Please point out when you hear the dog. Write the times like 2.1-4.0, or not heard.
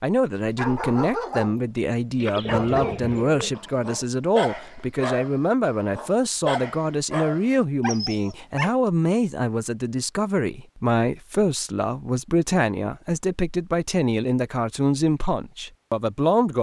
0.3-1.7, 2.4-8.8.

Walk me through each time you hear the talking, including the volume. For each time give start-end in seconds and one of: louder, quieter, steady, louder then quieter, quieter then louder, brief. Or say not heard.
0.0-16.5 steady.